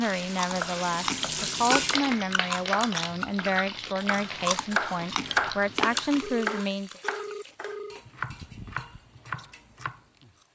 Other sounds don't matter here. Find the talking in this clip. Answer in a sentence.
The talking can be heard from 0.0 to 6.9 s.